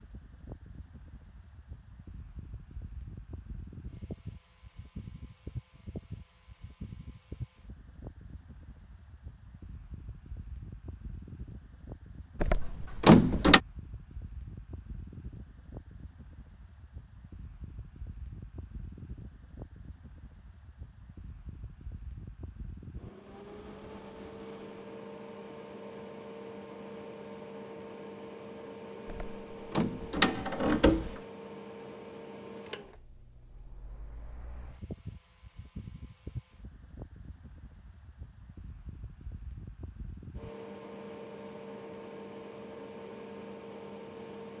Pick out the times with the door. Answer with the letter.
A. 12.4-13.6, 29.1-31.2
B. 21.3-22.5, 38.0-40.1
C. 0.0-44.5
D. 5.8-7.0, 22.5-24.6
A.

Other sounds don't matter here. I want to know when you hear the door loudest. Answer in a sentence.
The loudest moment of the door is at 13 seconds.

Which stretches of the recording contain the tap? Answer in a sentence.
The tap can't be heard in this clip.